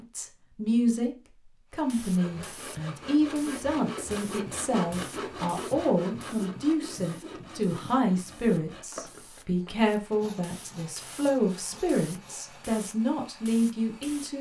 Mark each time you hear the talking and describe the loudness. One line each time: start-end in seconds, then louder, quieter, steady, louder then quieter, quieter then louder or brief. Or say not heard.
0.0-1.1 brief
1.7-14.3 steady.